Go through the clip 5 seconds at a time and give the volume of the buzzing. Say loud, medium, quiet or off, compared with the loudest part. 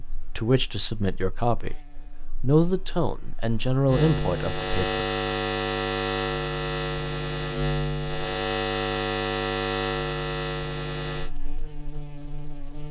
medium, loud, medium.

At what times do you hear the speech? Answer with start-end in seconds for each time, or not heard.
0.0-1.8, 2.4-5.0.